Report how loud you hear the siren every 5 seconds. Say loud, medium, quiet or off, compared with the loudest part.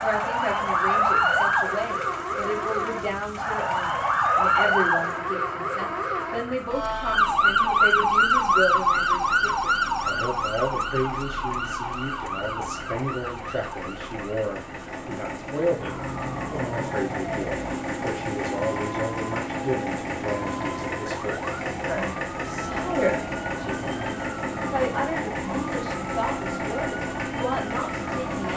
loud, loud, medium, quiet, quiet, quiet.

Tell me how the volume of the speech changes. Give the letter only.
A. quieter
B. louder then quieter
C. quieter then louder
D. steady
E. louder
D.